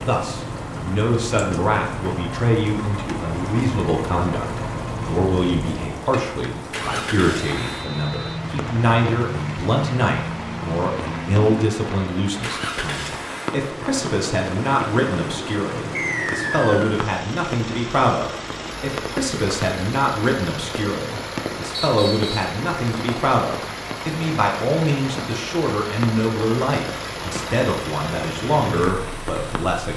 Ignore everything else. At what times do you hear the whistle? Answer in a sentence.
You can hear the whistle from 7.5 to 8.4 s, from 15.9 to 17.0 s and from 21.7 to 22.5 s.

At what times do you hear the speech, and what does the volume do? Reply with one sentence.
You can hear the speech from 0.1 to 29.9 s, at a steady volume.